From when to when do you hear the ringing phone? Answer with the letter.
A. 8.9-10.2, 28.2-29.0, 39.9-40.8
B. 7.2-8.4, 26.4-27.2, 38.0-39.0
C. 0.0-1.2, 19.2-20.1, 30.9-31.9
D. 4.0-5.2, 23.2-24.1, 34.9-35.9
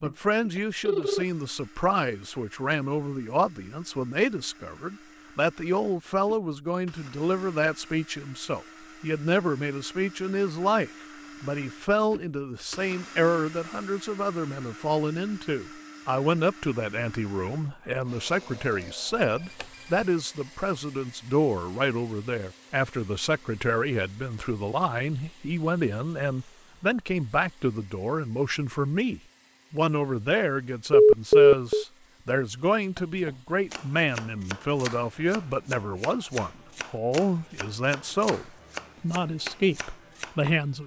C.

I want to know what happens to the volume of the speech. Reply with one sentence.
The loudness of the speech stays about the same.